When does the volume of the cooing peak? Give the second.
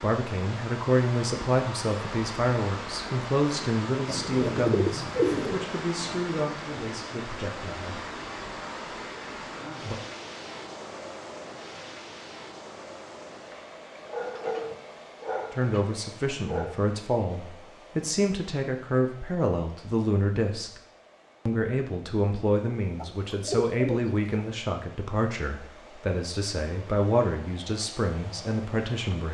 5 s.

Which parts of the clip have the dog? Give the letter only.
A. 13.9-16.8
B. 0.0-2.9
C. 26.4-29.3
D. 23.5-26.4
A.